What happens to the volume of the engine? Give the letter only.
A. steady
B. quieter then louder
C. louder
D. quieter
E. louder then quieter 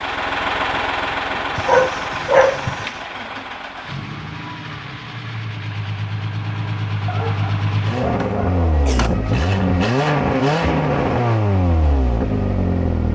B.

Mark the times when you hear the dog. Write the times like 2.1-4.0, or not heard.
1.6-3.0, 7.0-9.1.